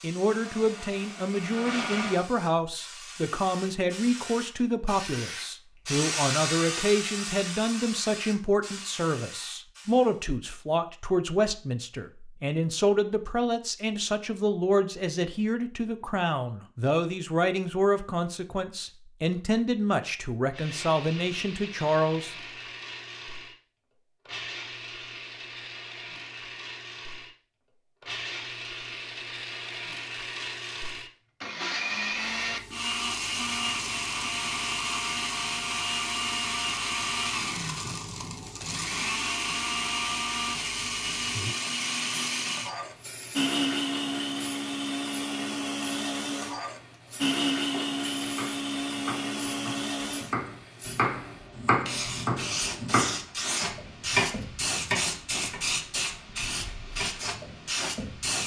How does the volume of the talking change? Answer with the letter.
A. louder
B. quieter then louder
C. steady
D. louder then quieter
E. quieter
C.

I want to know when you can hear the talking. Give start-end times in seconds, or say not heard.
0.0-22.4.